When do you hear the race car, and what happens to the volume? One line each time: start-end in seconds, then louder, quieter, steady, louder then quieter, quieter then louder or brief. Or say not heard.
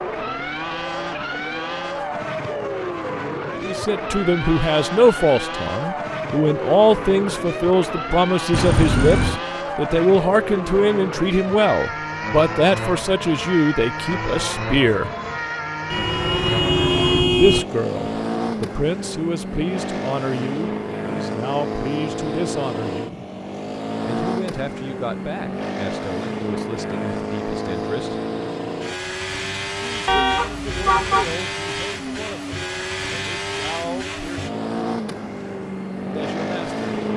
0.0-37.1 steady.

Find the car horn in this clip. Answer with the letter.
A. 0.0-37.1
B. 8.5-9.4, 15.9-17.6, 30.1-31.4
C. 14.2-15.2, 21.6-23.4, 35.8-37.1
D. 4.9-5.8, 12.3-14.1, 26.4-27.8
B.